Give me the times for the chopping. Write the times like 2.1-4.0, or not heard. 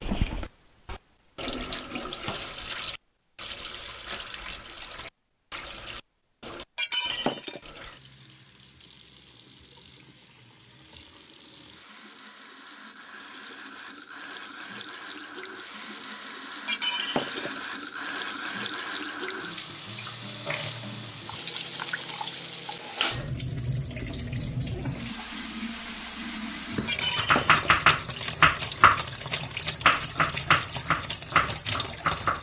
27.1-29.1, 29.9-32.3.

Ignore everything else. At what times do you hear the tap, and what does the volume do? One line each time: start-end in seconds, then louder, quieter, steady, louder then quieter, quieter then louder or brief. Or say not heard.
0.0-32.3 quieter then louder.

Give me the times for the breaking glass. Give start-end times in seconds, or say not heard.
6.8-7.7, 16.6-17.6, 26.9-27.9.